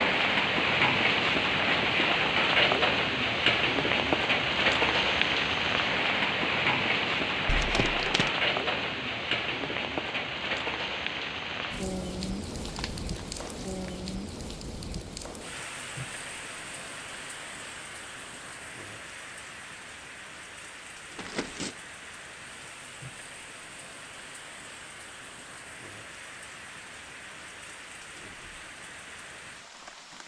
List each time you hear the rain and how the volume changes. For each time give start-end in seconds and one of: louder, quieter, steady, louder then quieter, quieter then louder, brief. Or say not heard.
0.0-30.2 quieter.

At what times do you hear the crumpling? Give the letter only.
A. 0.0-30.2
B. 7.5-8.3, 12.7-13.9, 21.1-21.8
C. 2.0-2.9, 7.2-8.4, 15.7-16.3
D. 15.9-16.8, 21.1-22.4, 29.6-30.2
B.